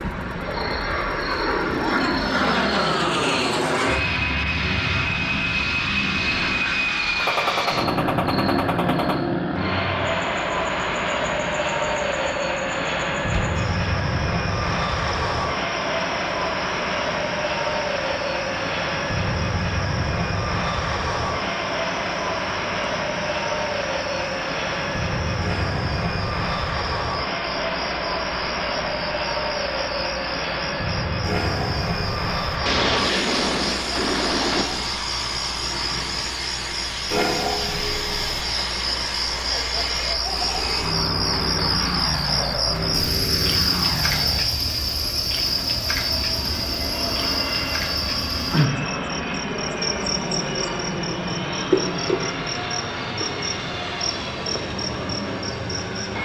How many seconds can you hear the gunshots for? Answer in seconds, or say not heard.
6 s.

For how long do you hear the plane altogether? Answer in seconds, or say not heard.
56 s.